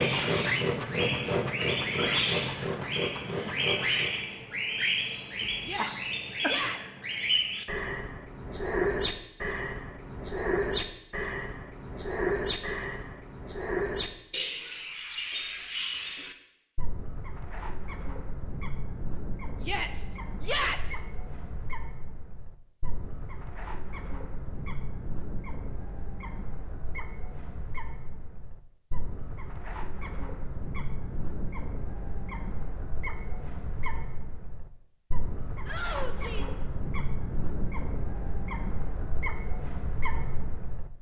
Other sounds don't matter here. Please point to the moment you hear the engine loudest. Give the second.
1 s.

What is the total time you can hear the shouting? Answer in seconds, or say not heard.
4 s.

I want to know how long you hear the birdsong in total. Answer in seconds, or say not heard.
41 s.